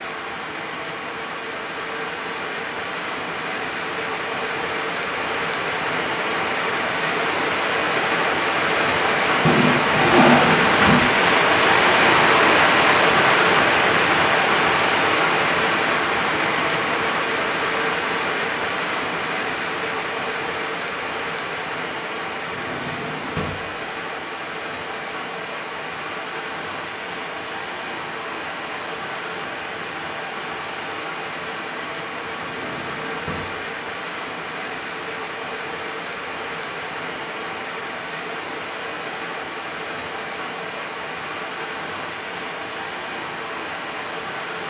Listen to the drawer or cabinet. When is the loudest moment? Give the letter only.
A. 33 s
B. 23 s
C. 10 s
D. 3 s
C.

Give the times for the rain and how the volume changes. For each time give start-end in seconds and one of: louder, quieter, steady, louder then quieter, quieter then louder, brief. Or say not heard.
0.0-44.6 louder then quieter.